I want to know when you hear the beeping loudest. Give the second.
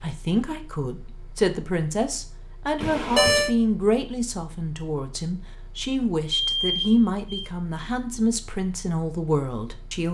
3 s.